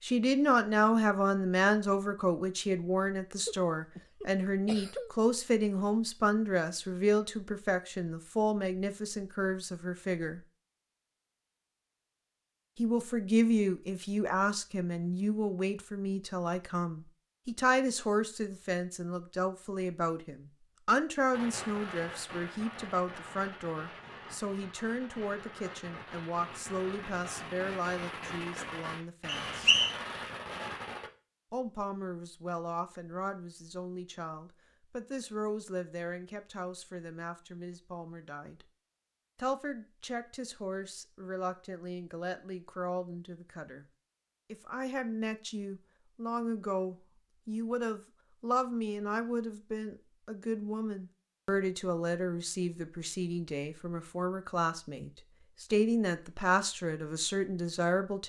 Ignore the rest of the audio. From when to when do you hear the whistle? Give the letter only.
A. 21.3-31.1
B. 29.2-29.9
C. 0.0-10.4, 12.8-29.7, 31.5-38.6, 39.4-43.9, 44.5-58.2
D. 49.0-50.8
B.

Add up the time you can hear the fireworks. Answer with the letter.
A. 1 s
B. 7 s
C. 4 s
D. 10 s
D.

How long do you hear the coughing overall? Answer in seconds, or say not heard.
2 s.